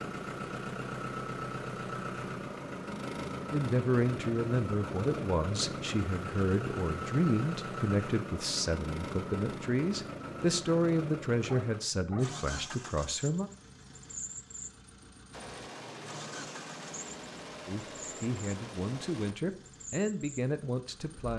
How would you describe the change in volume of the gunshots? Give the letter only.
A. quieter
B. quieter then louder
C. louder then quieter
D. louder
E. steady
E.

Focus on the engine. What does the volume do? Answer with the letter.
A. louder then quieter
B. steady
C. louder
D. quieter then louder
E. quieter
E.